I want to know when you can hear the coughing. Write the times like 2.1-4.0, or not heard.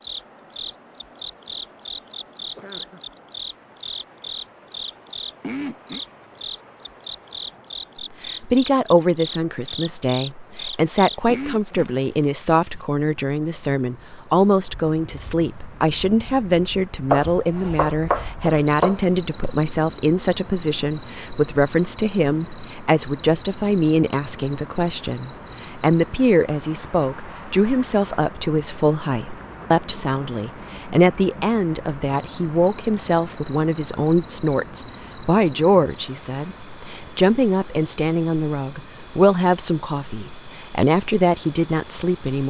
2.0-3.0.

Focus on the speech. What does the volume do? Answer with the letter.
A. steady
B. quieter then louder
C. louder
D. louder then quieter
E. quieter
A.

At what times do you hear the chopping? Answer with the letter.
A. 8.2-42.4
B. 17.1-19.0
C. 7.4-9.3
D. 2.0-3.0
B.